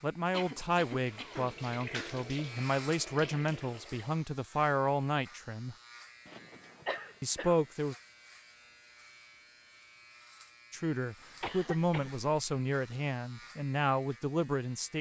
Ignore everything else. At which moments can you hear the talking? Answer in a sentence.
The talking can be heard from 0.0 to 5.8 s, from 7.2 to 8.0 s and from 10.7 to 14.9 s.